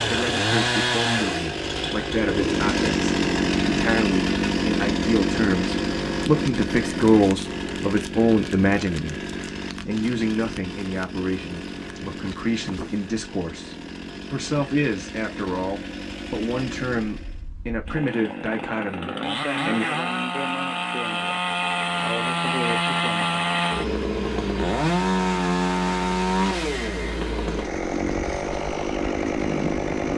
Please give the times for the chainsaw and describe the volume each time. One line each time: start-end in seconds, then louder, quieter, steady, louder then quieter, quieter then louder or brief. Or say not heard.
0.0-30.1 quieter then louder.